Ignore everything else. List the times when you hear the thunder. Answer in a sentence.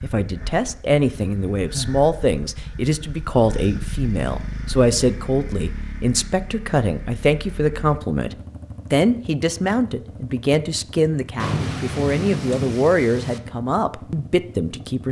The thunder can be heard from 11.3 to 13.4 s.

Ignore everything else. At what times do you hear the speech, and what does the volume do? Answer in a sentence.
You can hear the speech from 0.0 to 15.0 s, at a steady volume.